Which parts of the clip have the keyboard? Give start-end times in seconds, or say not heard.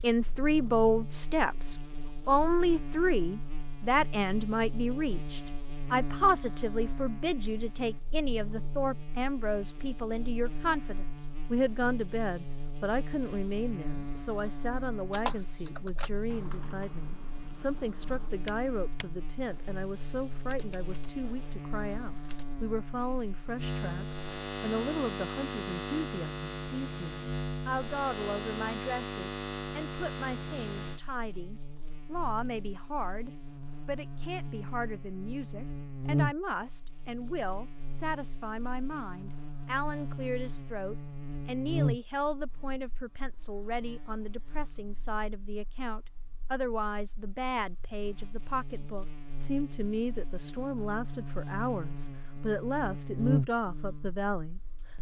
15.1-22.4.